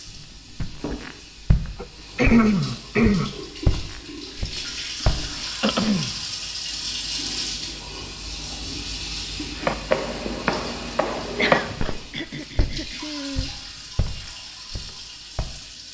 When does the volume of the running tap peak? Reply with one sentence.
The volume of the running tap peaks at 7 seconds.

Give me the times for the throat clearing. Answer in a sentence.
The throat clearing can be heard from 1.8 to 3.3 s, from 5.6 to 6.2 s and from 11.3 to 13.5 s.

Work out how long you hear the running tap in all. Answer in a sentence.
The running tap can be heard for 16 seconds in total.